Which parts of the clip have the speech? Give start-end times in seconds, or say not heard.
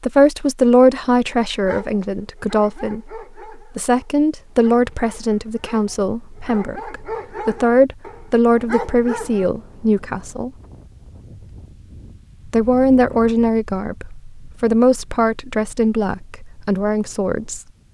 0.0-10.5, 12.4-17.6.